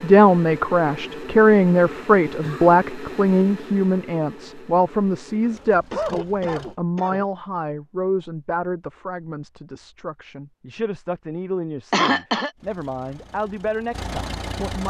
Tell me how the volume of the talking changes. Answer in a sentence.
The loudness of the talking goes down.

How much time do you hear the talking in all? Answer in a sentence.
You can hear the talking for 15 seconds altogether.